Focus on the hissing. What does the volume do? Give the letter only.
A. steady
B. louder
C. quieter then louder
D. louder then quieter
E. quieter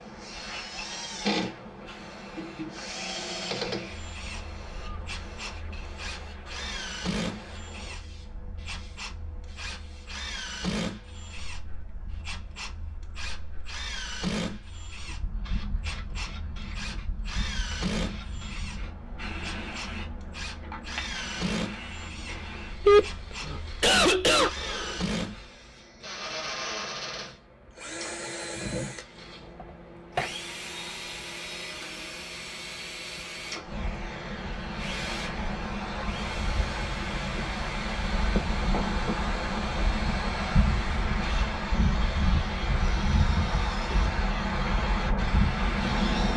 B.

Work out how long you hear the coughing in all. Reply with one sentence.
The coughing can be heard for 2 seconds in total.